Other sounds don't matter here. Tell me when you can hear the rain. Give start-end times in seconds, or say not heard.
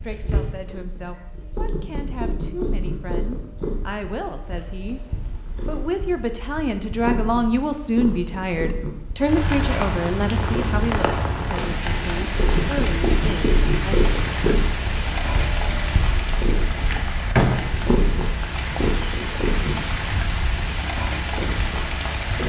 9.2-22.4.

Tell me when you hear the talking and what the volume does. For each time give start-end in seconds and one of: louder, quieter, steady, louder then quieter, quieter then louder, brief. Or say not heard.
0.0-5.0 louder
5.7-14.1 quieter.